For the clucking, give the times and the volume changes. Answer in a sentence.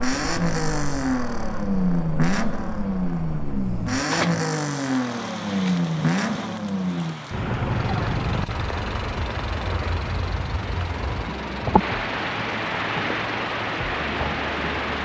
The clucking can't be heard in this clip.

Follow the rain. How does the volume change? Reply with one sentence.
The volume of the rain goes up.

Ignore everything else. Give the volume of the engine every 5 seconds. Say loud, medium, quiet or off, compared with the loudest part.
loud, loud, quiet.